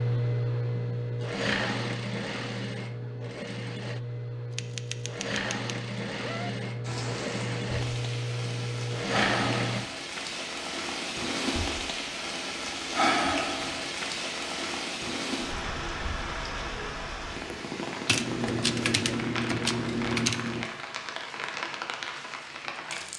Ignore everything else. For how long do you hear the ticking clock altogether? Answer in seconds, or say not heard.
not heard.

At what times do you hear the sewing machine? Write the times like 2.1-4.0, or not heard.
0.0-9.8.